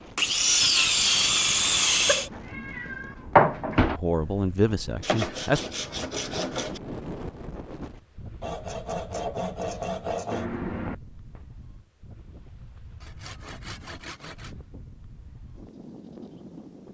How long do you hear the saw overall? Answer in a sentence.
You can hear the saw for 8 seconds altogether.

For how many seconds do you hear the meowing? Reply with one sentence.
The meowing can be heard for 3 seconds in total.